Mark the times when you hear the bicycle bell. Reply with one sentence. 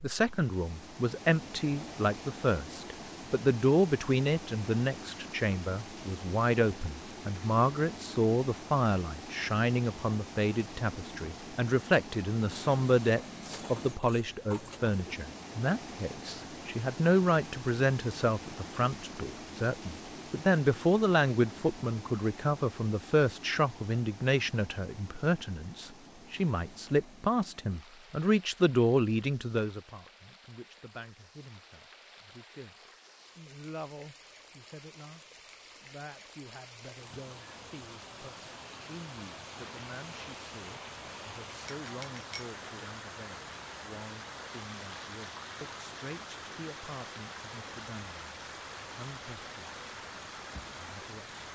You can hear the bicycle bell from 41.6 to 42.5 s.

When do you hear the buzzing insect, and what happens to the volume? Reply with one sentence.
You can't hear the buzzing insect here.